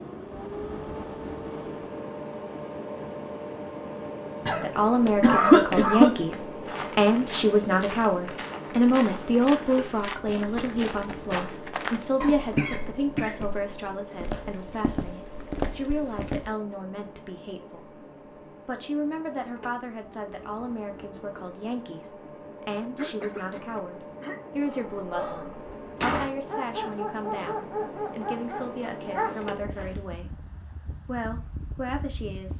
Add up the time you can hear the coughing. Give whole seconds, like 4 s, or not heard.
4 s.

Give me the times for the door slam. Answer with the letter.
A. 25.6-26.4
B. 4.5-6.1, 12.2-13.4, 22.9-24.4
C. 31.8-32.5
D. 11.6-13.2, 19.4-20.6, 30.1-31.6
A.